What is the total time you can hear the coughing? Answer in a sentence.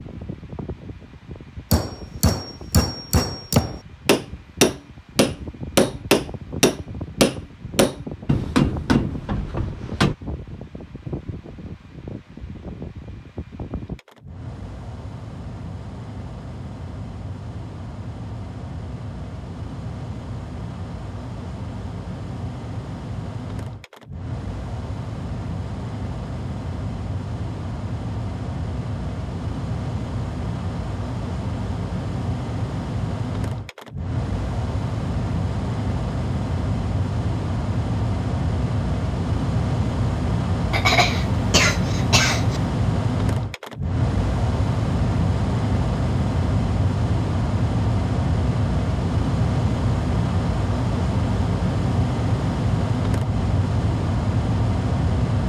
The coughing can be heard for 2 seconds in total.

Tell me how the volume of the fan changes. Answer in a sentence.
The volume of the fan goes up.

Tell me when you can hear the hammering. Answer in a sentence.
You can hear the hammering from 1.7 to 10.2 s.